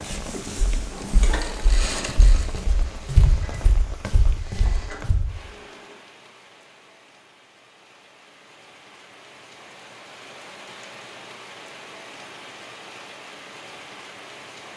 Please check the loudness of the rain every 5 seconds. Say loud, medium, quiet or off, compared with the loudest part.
loud, medium, loud.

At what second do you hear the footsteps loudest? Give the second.
3 s.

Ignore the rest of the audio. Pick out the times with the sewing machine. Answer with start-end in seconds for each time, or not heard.
0.0-6.0.